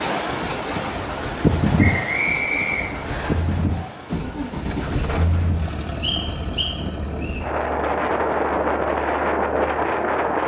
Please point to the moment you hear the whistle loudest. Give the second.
2 s.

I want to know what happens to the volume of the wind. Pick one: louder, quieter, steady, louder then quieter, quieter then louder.
quieter then louder.